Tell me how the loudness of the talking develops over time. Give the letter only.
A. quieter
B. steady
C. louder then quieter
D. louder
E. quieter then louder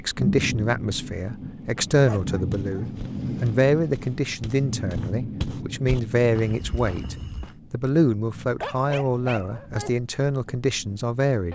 B.